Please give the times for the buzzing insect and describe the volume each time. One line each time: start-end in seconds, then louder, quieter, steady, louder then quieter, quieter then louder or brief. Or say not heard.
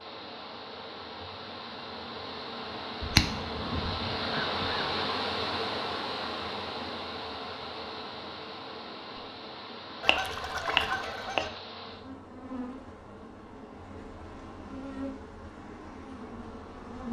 0.0-17.0 louder then quieter.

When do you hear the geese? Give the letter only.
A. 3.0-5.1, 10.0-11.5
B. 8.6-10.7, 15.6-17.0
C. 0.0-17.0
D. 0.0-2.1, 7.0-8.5
A.